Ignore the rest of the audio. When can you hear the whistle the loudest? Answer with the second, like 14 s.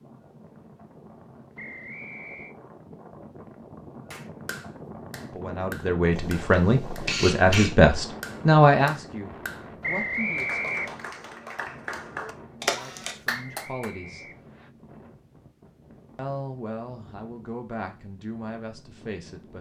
10 s.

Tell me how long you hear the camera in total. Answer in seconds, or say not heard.
2 s.